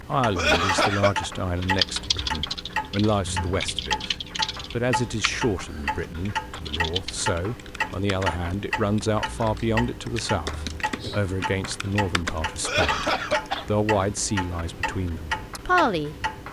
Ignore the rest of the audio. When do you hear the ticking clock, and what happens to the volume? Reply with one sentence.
You can hear the ticking clock from 0.0 to 16.4 s, at a steady volume.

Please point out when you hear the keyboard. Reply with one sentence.
You can hear the keyboard from 1.6 to 13.5 s.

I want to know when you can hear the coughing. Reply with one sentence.
You can hear the coughing from 0.3 to 1.2 s and from 12.6 to 13.7 s.